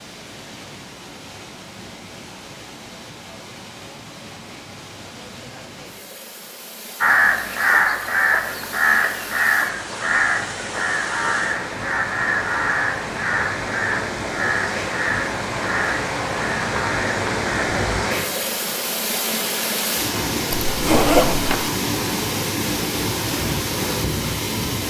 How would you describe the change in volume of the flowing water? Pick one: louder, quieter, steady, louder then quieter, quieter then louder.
louder.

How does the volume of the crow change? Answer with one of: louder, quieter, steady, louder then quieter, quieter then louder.
quieter.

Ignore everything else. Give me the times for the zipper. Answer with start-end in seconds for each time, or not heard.
20.5-21.7.